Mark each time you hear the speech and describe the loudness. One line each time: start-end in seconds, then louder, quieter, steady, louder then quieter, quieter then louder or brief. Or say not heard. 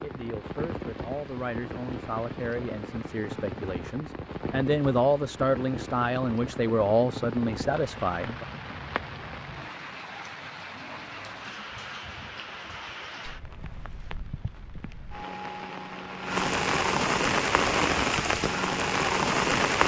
0.0-8.4 louder.